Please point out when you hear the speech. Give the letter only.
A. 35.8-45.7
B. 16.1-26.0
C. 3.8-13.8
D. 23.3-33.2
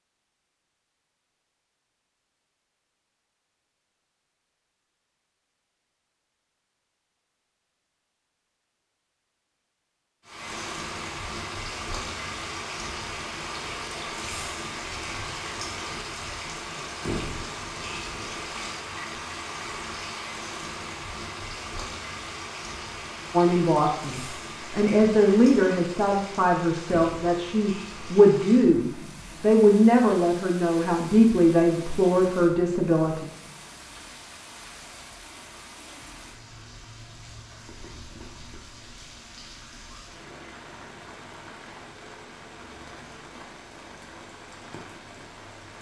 D.